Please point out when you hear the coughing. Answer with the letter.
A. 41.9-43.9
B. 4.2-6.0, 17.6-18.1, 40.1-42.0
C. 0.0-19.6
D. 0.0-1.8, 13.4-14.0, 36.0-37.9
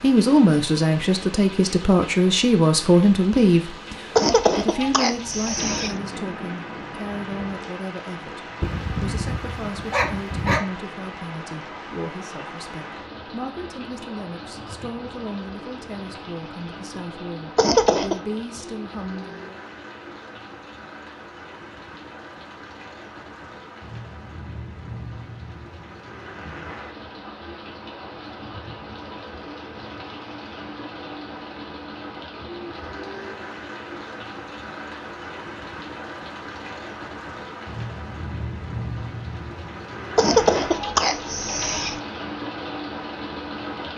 B.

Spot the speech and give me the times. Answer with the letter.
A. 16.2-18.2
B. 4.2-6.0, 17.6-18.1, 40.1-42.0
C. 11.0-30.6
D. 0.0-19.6
D.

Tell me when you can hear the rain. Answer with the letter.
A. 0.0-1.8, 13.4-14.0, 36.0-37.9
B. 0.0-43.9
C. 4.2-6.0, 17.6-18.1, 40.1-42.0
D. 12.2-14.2
B.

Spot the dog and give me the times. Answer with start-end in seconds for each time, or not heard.
8.6-10.6.